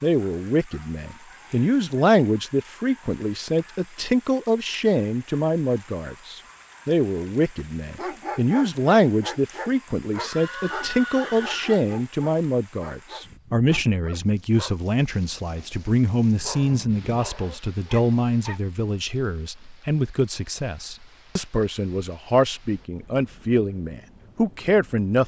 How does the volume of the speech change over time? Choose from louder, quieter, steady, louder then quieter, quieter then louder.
steady.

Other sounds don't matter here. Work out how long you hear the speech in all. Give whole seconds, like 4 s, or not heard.
25 s.